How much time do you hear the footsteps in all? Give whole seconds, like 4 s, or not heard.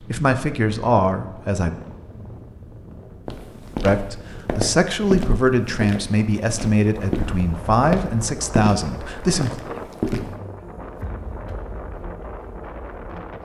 7 s.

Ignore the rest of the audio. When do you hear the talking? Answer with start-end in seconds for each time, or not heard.
0.1-1.7, 3.8-9.6.